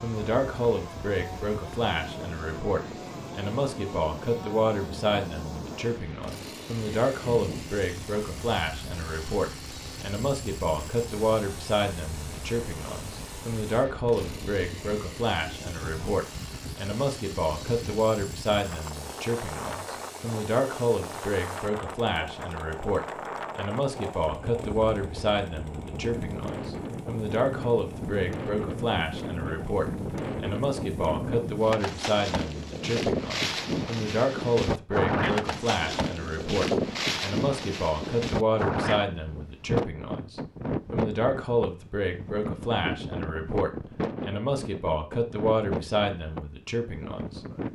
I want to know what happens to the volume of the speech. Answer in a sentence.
The volume of the speech stays about the same.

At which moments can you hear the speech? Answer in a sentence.
You can hear the speech from 0.0 to 47.5 s.